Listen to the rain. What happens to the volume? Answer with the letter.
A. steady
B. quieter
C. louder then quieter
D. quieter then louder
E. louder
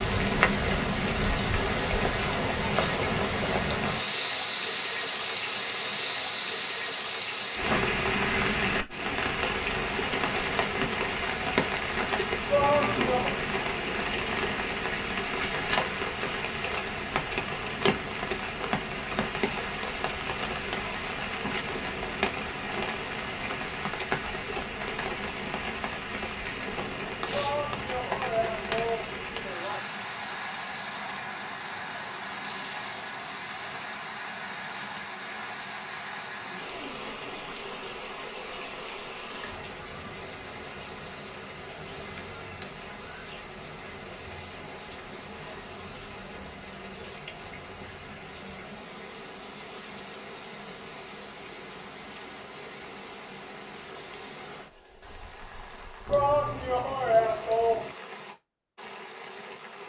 B.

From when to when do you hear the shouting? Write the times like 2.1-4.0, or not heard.
12.4-13.3, 27.3-29.8, 56.0-57.9.